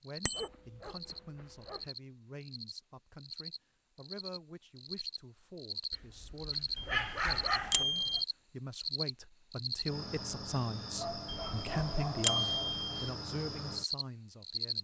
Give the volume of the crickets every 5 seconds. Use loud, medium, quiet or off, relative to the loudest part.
medium, loud, loud.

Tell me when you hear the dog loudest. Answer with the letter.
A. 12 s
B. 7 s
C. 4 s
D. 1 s
B.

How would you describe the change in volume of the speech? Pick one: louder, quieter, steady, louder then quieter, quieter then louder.
louder.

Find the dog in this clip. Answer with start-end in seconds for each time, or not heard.
0.3-1.9, 5.9-7.8, 10.9-12.8.